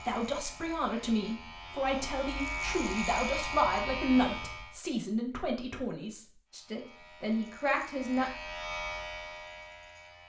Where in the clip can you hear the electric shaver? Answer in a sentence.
The electric shaver can be heard from 0.0 to 4.8 s and from 6.5 to 10.2 s.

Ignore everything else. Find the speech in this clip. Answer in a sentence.
The speech can be heard from 0.1 to 8.3 s.